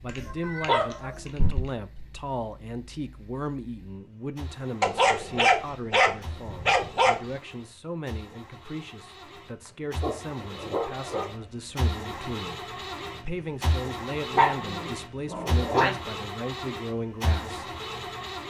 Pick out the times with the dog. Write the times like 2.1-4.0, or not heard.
0.1-1.7, 4.8-7.2, 10.0-11.4, 14.3-15.9.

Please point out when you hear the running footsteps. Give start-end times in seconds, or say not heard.
not heard.